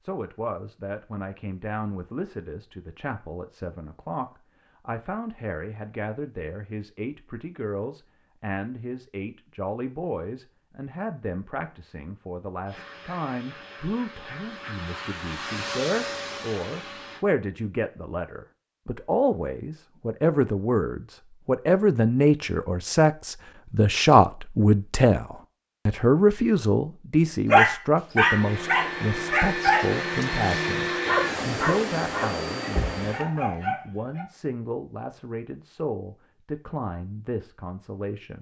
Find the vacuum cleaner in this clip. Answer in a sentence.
You can hear the vacuum cleaner from 12.7 to 17.2 s and from 28.1 to 33.8 s.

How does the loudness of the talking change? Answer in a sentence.
The loudness of the talking goes up, then down.